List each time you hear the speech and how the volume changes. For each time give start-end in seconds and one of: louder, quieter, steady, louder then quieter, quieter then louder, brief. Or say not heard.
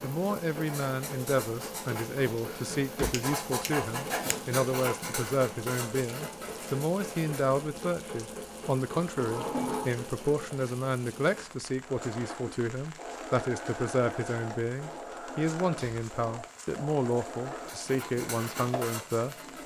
0.0-19.4 steady.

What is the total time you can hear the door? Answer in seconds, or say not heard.
2 s.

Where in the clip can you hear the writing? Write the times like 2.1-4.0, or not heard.
0.6-7.5, 17.6-19.6.